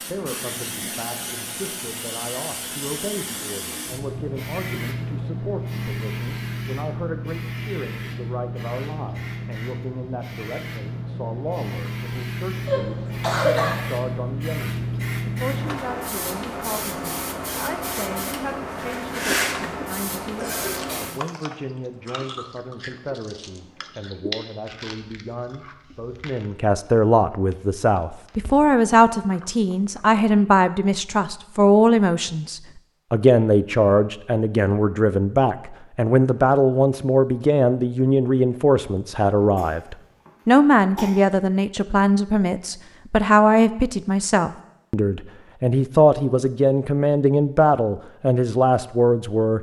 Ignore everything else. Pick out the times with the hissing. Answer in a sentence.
You can hear the hissing from 0.0 to 21.2 s.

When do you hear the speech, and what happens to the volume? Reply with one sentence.
You can hear the speech from 0.0 to 49.5 s, getting louder.